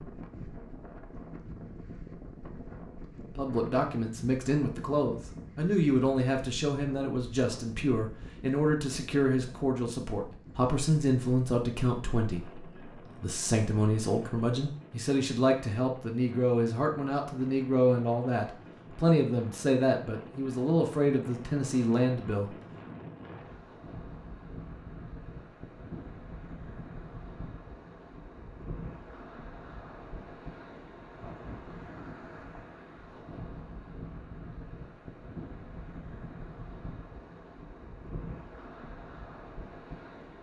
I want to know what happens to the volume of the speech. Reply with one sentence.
The volume of the speech stays about the same.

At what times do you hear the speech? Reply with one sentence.
You can hear the speech from 3.4 to 22.5 s.